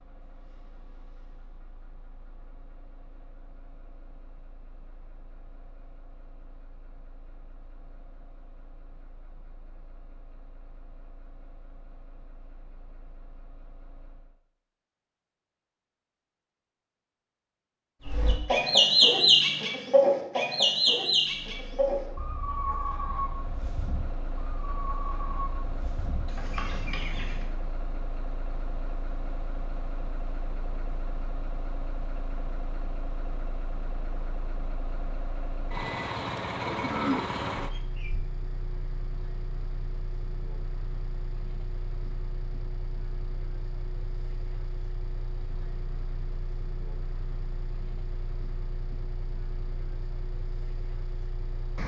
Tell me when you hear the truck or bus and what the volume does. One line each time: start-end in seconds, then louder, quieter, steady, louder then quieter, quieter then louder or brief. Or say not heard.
0.0-14.3 steady
21.4-51.8 louder then quieter.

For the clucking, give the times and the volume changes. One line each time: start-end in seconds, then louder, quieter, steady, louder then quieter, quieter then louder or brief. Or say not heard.
18.1-27.5 quieter.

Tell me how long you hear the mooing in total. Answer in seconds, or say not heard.
2 s.